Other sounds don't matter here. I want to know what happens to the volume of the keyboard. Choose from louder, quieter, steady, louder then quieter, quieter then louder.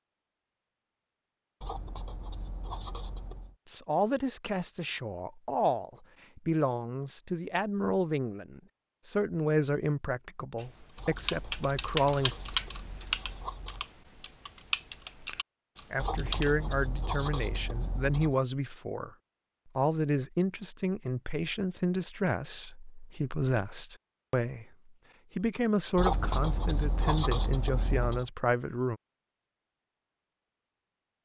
quieter.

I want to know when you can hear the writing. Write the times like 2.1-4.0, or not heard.
1.6-3.5, 10.9-13.8, 15.9-18.4, 25.9-28.3.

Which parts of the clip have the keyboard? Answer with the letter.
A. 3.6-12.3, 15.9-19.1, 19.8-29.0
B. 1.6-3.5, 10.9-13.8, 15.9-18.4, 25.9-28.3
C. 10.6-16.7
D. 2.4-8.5
C.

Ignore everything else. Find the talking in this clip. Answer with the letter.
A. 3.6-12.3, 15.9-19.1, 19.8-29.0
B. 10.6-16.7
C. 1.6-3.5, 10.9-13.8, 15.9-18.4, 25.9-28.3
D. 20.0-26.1
A.